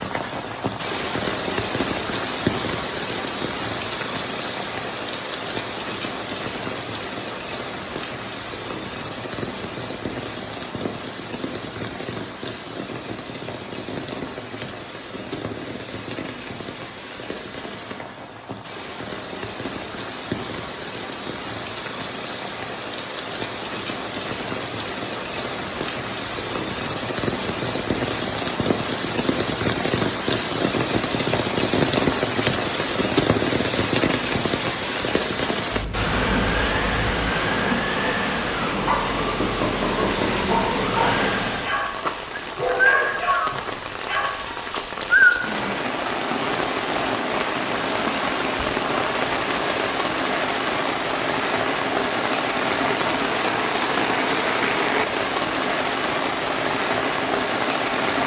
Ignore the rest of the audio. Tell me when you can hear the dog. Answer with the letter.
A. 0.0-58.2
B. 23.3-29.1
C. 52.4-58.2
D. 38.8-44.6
D.